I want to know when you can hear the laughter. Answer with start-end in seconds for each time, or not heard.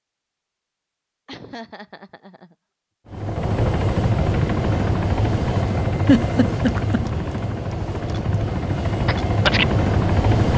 1.2-2.5, 6.0-7.0.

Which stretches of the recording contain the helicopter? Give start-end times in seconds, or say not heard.
3.1-10.5.